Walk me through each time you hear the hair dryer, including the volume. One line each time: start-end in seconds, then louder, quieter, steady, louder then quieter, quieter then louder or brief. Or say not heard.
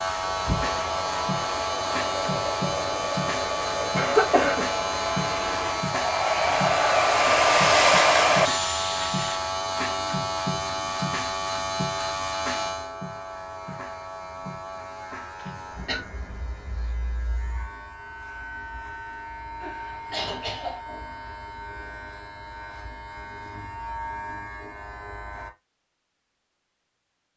0.2-9.4 louder.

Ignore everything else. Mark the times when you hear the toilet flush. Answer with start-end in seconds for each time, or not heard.
not heard.